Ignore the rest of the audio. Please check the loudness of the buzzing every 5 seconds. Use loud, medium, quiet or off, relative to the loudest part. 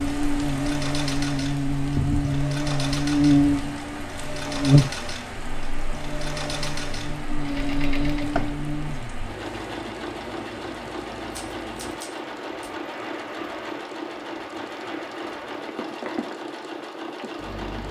loud, medium, off, off.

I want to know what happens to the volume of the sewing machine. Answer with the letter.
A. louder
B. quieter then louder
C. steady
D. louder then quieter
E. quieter
C.